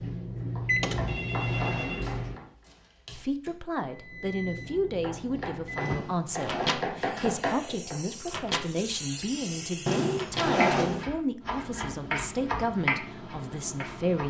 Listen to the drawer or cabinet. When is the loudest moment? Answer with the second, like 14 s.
11 s.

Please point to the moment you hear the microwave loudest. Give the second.
1 s.